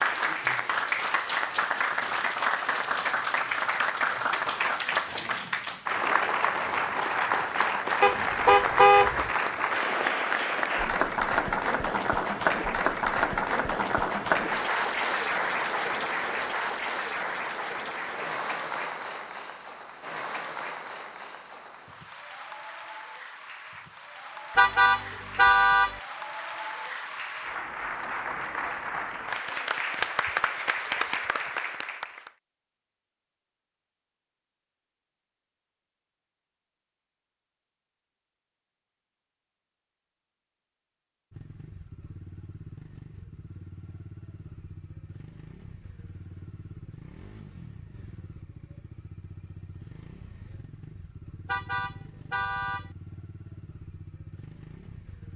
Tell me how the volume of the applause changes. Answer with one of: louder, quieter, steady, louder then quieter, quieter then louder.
quieter then louder.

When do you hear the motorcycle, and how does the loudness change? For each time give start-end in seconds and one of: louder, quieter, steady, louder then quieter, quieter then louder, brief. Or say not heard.
41.3-55.3 steady.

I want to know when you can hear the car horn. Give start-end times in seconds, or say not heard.
8.0-9.3, 24.6-25.9, 51.5-52.9.